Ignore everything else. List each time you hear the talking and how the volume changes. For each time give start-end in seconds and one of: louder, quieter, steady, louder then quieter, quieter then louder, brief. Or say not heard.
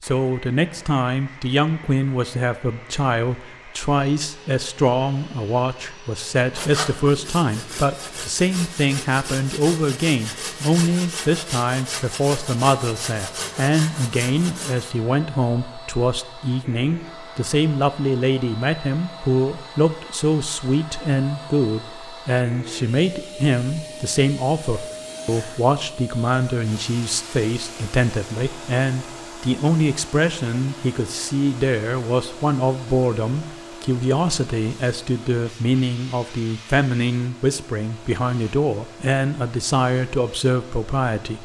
0.0-41.4 steady.